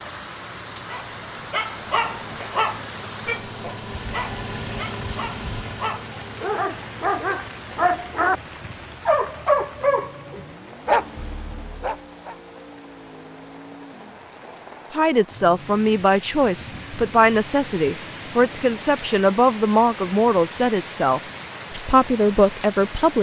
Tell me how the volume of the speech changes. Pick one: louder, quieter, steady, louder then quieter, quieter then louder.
steady.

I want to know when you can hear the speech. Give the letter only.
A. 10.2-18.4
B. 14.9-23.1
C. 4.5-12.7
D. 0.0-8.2
B.